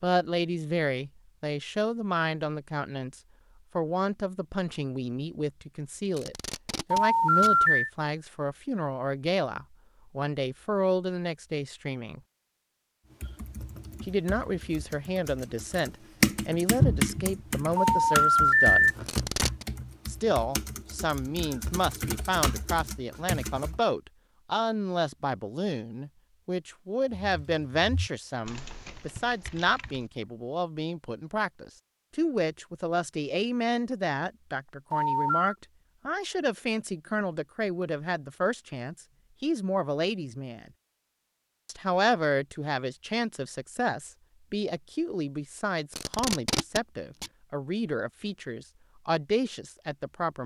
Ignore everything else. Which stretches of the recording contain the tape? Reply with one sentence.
The tape can be heard from 6.1 to 7.6 s, from 19.1 to 19.6 s and from 45.9 to 47.3 s.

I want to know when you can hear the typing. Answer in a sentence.
The typing can be heard from 13.2 to 23.8 s and from 27.1 to 30.1 s.